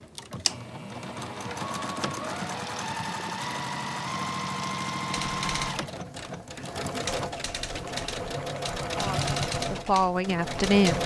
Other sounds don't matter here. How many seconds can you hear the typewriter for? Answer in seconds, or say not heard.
6 s.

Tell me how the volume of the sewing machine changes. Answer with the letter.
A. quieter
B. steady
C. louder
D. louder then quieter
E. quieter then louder
B.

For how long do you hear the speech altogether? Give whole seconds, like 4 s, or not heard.
2 s.